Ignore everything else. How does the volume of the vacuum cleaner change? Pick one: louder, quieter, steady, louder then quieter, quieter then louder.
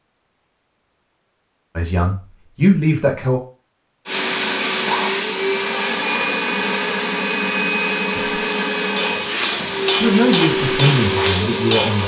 steady.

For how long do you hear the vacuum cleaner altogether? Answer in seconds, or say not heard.
8 s.